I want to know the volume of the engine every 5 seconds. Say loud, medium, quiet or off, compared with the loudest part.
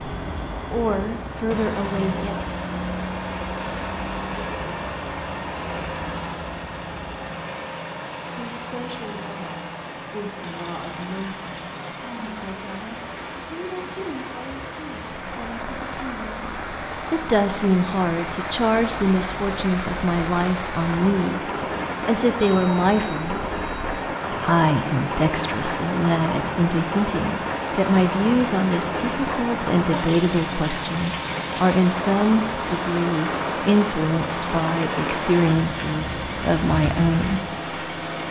loud, loud, medium, medium, medium, loud, loud, loud.